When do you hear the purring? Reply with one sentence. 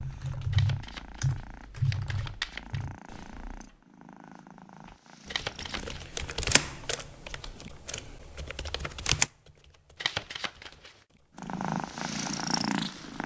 You can hear the purring from 0.0 to 6.5 s and from 11.3 to 13.2 s.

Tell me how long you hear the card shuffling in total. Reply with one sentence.
You can hear the card shuffling for 4 seconds altogether.